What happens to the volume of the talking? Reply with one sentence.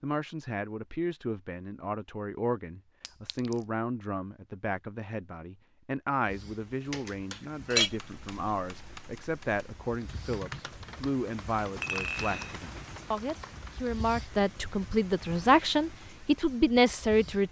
The volume of the talking goes up.